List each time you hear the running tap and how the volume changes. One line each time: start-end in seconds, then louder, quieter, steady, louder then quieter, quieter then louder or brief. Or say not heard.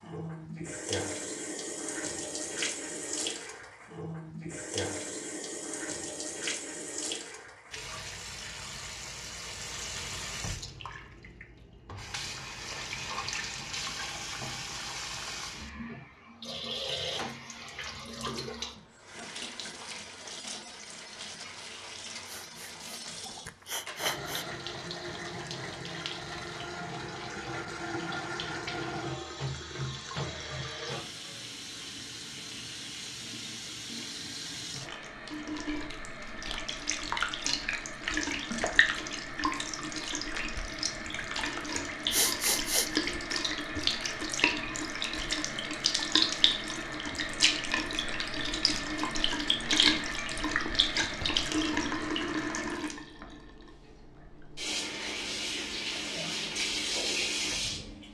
0.0-58.1 louder.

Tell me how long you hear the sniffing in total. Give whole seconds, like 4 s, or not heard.
3 s.